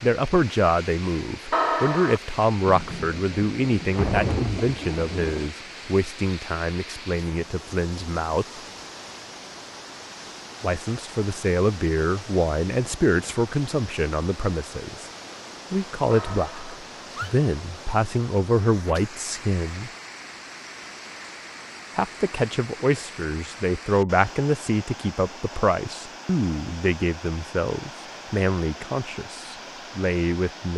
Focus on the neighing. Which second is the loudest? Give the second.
2 s.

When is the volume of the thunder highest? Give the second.
4 s.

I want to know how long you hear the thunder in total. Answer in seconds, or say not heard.
3 s.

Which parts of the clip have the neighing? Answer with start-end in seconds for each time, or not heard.
1.5-2.2, 16.1-17.3.